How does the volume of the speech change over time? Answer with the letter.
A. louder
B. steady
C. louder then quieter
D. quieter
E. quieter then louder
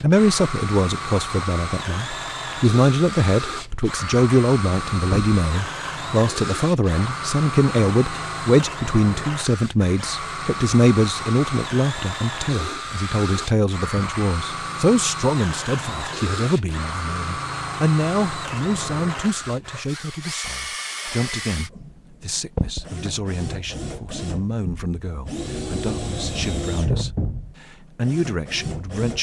D.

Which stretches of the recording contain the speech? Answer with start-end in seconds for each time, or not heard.
0.0-29.1.